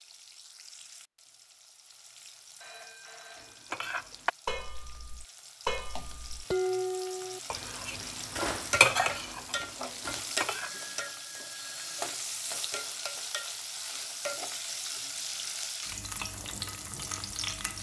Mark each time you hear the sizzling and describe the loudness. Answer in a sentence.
You can hear the sizzling from 0.0 to 17.7 s, getting louder.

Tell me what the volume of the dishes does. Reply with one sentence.
The loudness of the dishes goes up, then down.